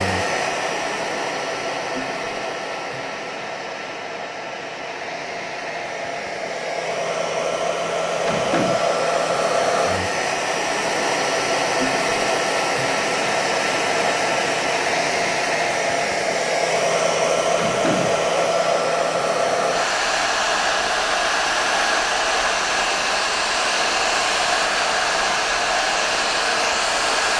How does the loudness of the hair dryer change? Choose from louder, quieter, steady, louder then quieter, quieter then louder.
louder.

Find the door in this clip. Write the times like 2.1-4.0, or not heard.
8.2-8.8, 17.6-18.3.